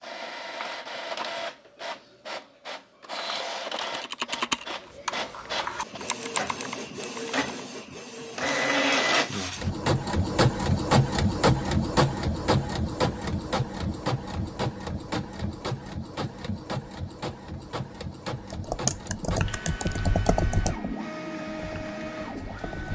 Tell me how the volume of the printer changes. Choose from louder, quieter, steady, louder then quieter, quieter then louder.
louder then quieter.